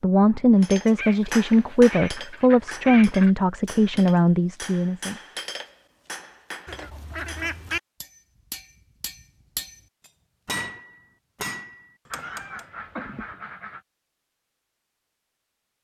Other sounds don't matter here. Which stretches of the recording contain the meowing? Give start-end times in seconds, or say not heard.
12.2-13.3.